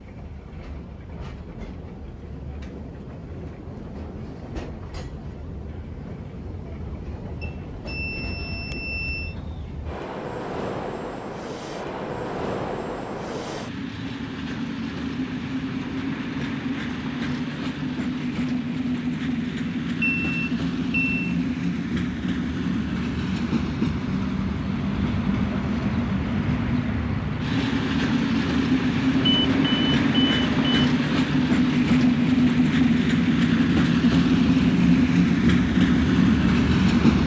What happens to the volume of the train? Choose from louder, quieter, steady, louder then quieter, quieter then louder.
louder.